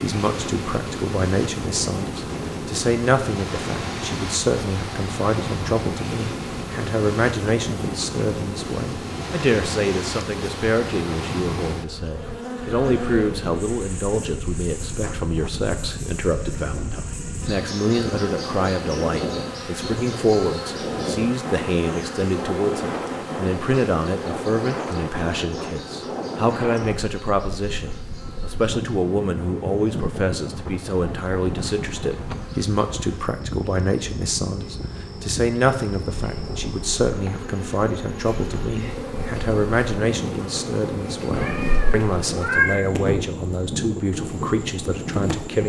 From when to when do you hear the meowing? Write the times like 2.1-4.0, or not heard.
41.3-42.8.